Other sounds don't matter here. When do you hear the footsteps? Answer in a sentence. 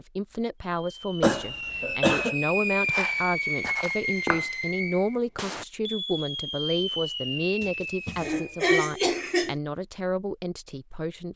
The footsteps can be heard from 2.8 to 4.5 s.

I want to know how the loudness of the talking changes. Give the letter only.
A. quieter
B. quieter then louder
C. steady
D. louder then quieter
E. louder
C.